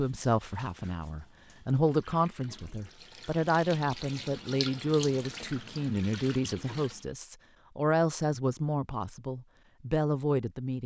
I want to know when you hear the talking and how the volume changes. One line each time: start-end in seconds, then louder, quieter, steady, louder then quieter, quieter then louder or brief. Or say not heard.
0.0-10.8 steady.